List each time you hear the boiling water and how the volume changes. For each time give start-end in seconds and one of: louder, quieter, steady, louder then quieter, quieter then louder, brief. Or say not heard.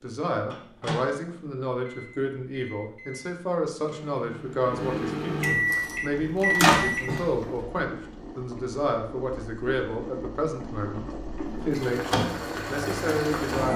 5.7-13.7 louder.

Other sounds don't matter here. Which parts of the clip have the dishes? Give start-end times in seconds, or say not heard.
not heard.